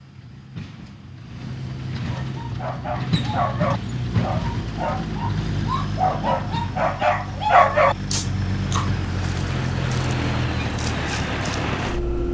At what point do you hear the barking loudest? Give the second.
8 s.